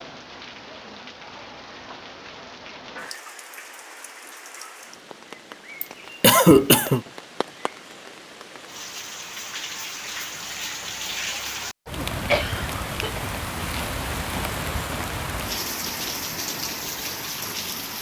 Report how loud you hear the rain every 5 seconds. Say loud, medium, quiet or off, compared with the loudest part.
medium, medium, loud, loud.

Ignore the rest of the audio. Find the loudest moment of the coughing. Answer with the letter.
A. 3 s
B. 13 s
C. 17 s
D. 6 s
D.